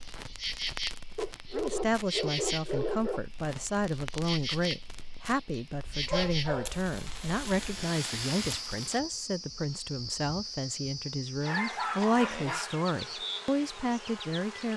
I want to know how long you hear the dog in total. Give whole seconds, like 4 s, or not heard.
5 s.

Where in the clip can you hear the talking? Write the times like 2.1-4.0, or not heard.
1.5-14.7.